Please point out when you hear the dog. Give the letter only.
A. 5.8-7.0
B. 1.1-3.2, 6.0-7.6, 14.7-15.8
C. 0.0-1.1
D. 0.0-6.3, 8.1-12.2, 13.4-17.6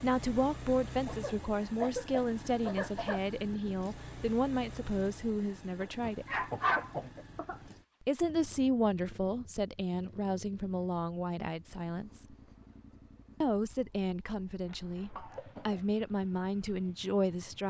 A.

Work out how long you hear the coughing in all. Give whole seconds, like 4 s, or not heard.
5 s.